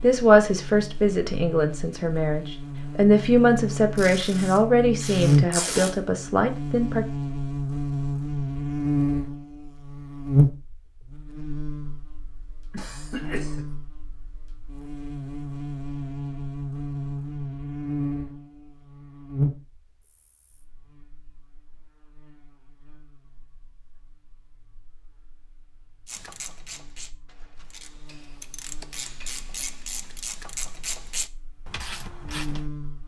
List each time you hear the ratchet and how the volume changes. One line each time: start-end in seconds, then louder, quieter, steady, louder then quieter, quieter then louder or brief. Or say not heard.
26.1-32.6 louder.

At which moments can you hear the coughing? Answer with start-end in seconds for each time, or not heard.
12.7-13.7.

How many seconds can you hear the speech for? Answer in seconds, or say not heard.
7 s.